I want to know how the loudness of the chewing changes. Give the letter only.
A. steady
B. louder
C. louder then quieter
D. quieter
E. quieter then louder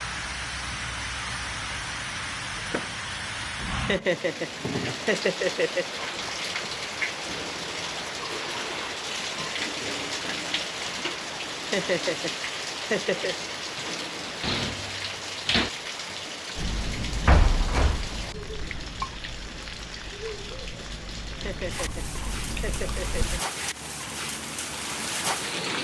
E.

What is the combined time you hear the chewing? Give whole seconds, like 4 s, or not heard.
7 s.